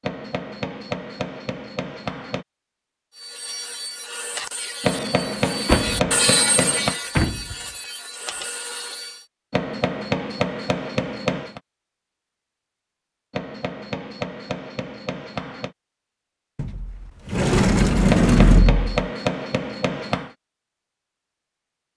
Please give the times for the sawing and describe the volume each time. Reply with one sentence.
The sawing can be heard from 3.1 to 9.2 s, getting louder then quieter.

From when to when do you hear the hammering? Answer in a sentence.
You can hear the hammering from 0.0 to 2.5 s, from 4.8 to 7.0 s, from 9.5 to 11.6 s, from 13.3 to 15.8 s and from 18.1 to 20.3 s.